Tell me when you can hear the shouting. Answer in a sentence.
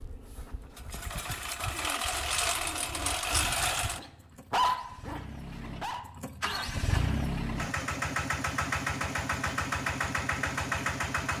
You can't hear the shouting here.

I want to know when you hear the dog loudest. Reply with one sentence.
The loudest moment of the dog is at 5 seconds.